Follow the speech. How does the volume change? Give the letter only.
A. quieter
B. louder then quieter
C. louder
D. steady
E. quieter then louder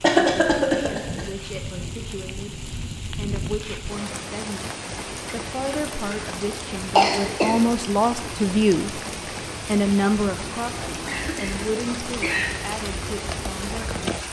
B.